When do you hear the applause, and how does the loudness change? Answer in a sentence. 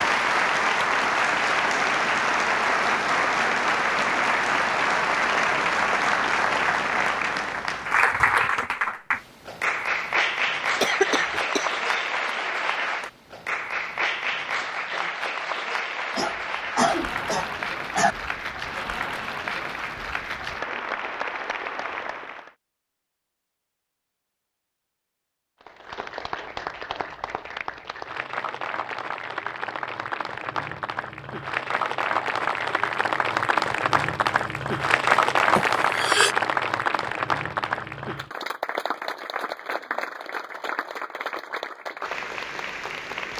You can hear the applause from 0.0 to 22.5 s, getting quieter; and from 25.6 to 43.3 s, getting louder then quieter.